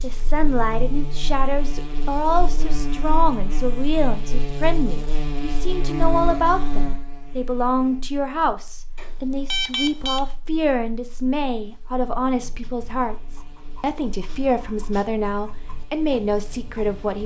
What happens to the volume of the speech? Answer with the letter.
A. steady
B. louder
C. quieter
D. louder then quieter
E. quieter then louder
A.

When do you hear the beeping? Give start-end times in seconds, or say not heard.
8.9-10.2.